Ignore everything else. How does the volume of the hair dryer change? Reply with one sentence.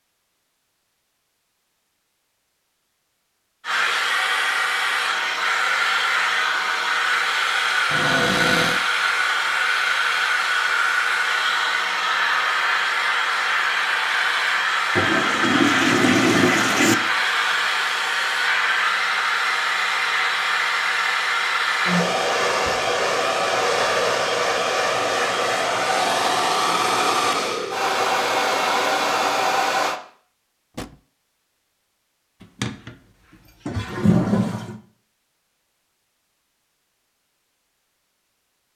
The volume of the hair dryer stays about the same.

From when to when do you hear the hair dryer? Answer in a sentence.
You can hear the hair dryer from 3.6 to 30.0 s.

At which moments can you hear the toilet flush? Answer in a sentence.
The toilet flush can be heard from 14.9 to 16.9 s and from 32.4 to 34.8 s.